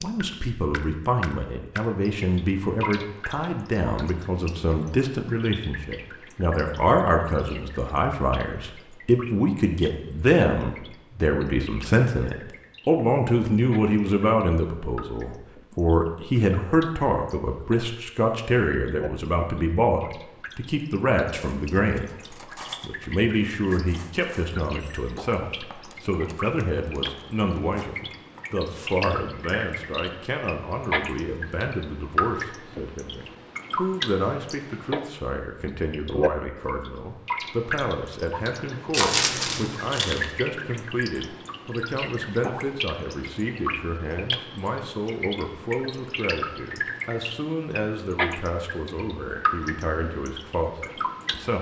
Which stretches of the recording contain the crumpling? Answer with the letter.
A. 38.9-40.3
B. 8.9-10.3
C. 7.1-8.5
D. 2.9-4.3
A.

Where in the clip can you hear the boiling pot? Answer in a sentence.
You can't hear the boiling pot here.